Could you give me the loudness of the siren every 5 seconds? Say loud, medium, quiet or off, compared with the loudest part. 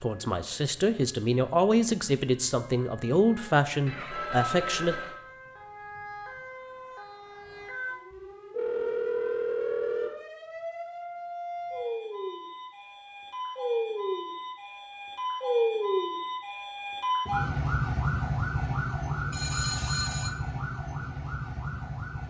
quiet, quiet, medium, loud, medium.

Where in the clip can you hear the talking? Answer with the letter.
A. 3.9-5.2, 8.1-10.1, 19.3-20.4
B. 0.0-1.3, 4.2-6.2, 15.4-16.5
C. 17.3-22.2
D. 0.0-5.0
D.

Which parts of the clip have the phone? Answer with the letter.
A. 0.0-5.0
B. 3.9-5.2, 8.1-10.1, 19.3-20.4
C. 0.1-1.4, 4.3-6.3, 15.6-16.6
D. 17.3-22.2
B.